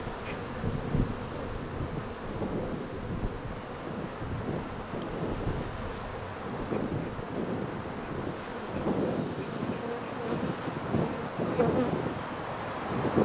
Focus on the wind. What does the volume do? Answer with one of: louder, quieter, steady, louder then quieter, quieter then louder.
louder.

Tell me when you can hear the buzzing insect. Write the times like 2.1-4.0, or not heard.
0.0-13.1.